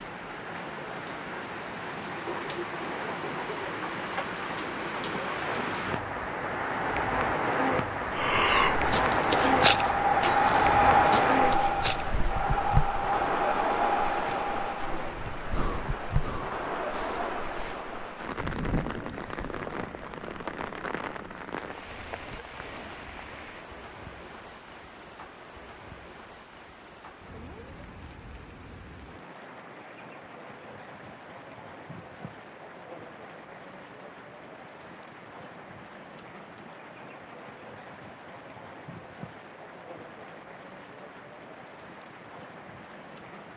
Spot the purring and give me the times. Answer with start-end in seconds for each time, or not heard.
not heard.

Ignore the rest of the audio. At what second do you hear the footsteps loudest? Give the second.
10 s.